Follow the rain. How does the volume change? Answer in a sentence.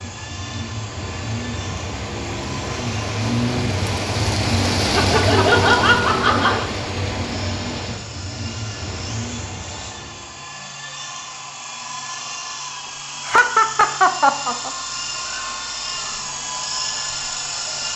The loudness of the rain goes up, then down.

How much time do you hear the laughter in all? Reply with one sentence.
The laughter can be heard for 3 seconds in total.